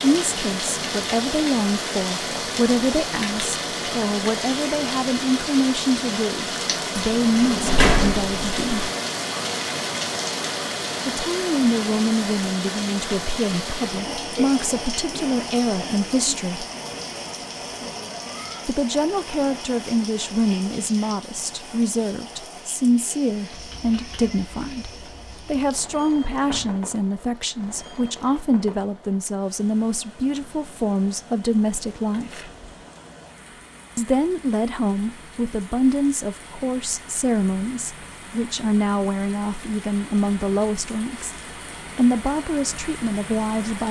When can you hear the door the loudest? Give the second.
8 s.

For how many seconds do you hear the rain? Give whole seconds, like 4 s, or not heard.
44 s.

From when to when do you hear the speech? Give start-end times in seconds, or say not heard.
0.0-8.8, 11.1-16.6, 18.6-32.5, 34.0-41.4, 42.0-43.8.